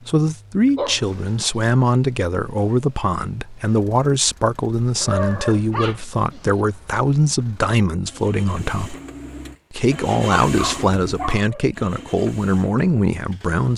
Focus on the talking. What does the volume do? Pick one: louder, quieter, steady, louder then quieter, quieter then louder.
steady.